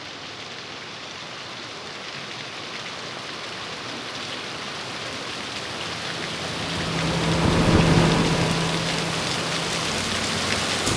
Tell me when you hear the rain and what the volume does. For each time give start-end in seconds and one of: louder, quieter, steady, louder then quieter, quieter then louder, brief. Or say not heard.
0.0-10.9 louder.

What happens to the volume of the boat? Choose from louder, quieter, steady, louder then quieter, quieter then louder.
louder then quieter.